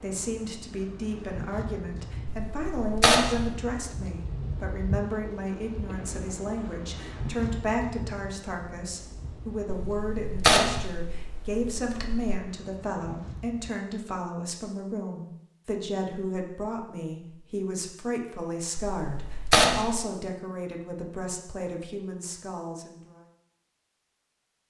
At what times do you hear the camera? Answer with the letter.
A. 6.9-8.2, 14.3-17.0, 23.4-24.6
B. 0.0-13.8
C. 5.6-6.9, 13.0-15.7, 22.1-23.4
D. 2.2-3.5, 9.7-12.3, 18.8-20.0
D.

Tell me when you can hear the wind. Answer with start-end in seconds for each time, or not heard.
0.0-13.8.